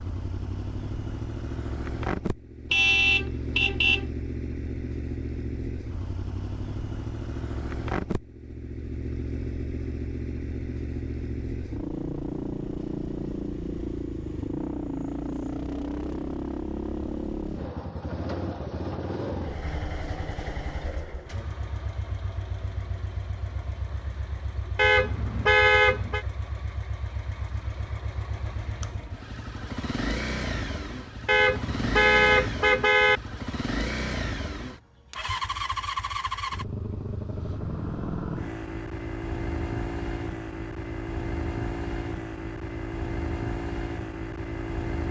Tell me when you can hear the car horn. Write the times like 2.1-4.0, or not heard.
2.7-4.1, 24.8-26.2, 31.2-33.2.